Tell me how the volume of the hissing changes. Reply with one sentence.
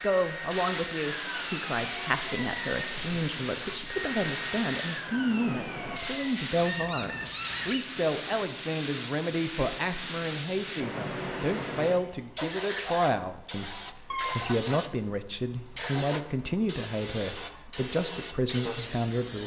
The loudness of the hissing stays about the same.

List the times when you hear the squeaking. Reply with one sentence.
The squeaking can be heard from 6.5 to 7.8 s and from 14.1 to 14.5 s.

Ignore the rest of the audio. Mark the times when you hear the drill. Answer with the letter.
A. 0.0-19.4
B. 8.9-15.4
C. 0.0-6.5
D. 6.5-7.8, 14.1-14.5
C.